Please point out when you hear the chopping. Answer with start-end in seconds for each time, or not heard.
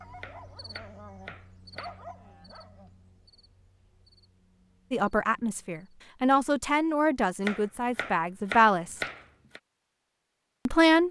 0.2-2.0, 7.4-9.6.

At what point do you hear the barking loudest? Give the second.
2 s.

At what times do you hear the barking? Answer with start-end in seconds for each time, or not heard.
0.0-3.0.